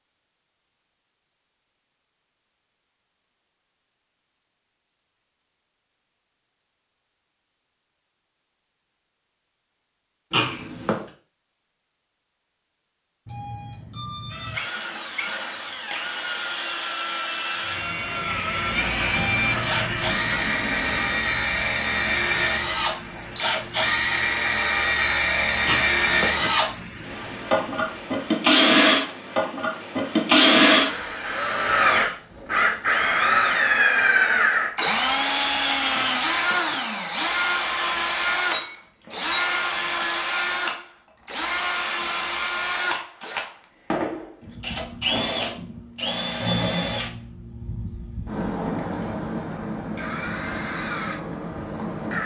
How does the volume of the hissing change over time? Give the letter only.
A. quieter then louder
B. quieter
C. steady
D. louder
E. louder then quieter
B.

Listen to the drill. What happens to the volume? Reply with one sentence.
The volume of the drill goes up, then down.